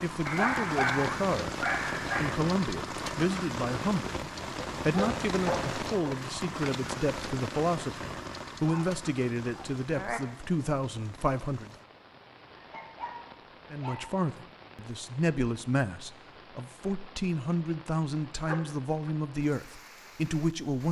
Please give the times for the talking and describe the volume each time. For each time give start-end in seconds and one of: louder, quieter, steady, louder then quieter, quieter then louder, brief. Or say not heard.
0.0-11.7 steady
13.7-20.8 steady.